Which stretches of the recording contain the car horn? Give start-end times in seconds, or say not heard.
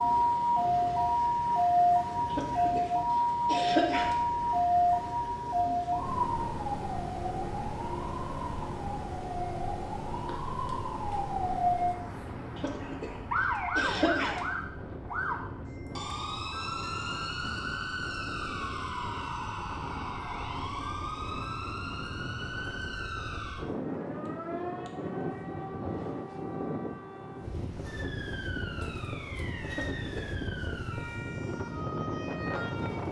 not heard.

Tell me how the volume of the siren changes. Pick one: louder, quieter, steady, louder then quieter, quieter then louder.
quieter.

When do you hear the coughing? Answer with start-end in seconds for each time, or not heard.
2.3-4.2, 12.6-13.2, 13.8-14.4, 29.7-30.3.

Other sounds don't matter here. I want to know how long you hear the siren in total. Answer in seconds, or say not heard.
33 s.